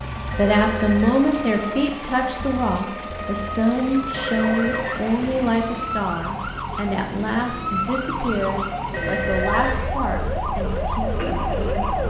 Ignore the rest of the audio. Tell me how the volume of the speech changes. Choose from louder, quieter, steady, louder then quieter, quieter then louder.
quieter.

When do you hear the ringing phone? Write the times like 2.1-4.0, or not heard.
0.3-1.6, 4.1-5.5, 8.9-10.0.